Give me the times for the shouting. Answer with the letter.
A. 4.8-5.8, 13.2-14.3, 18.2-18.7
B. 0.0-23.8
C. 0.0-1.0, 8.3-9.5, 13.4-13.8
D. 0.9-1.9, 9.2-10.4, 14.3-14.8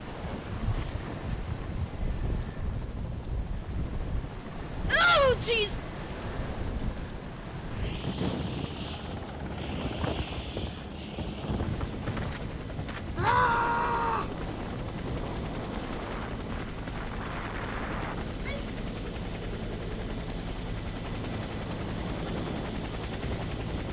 A.